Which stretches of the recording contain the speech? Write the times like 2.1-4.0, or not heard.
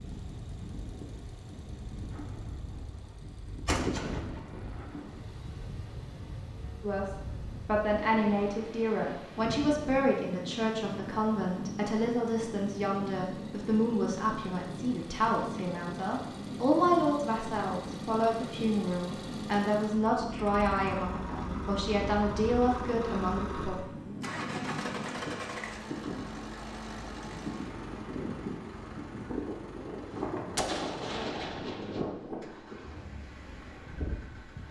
6.8-23.8.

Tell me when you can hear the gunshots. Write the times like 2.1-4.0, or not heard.
2.1-5.2, 30.1-32.0.